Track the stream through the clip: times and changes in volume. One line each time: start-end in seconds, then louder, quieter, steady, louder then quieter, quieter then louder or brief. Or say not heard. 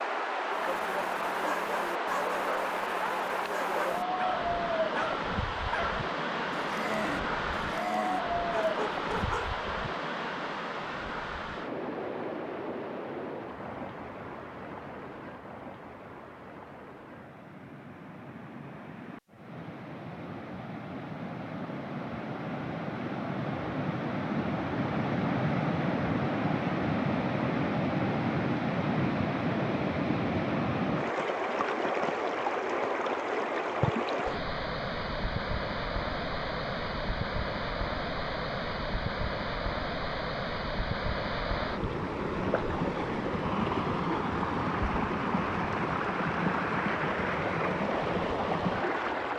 0.0-49.3 quieter then louder.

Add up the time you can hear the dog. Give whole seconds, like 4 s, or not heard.
9 s.